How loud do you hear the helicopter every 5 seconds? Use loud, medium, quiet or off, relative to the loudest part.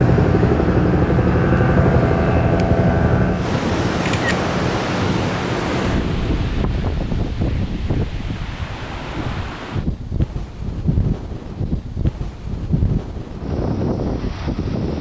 loud, medium, off.